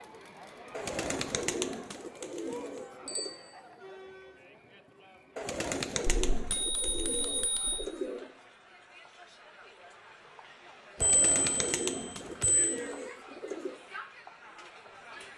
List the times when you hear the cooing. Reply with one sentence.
The cooing can be heard from 0.7 to 3.4 s, from 5.3 to 8.3 s and from 11.0 to 13.8 s.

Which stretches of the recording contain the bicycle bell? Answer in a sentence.
The bicycle bell can be heard from 3.0 to 3.5 s, from 6.0 to 7.8 s and from 11.0 to 12.8 s.